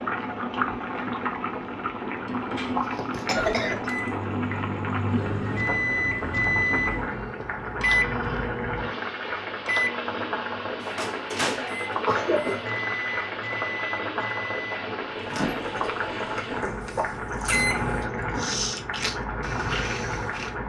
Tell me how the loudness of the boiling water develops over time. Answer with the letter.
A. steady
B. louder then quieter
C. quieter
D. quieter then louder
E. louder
A.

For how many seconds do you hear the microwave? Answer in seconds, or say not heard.
15 s.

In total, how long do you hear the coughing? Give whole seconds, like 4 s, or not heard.
2 s.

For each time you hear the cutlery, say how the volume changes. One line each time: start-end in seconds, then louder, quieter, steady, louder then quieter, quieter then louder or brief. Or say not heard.
not heard.